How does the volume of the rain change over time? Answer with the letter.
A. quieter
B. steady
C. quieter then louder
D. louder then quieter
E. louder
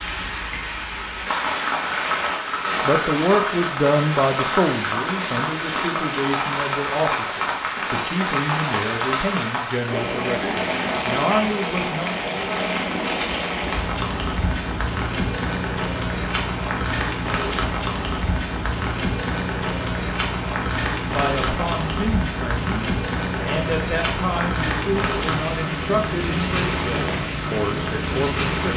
B.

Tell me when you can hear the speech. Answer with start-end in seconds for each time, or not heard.
2.9-12.2, 21.1-28.7.